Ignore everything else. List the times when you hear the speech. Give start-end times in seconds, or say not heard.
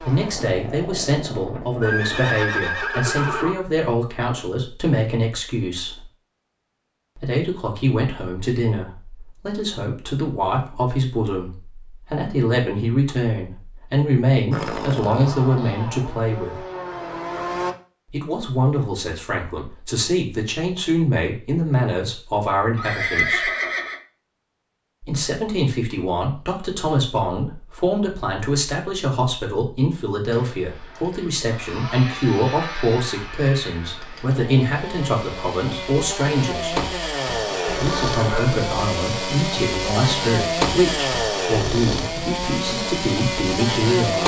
0.0-6.1, 7.2-16.6, 18.1-23.5, 25.0-36.9, 37.8-44.2.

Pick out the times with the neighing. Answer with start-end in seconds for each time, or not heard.
1.8-3.5, 22.8-24.0, 37.6-38.6.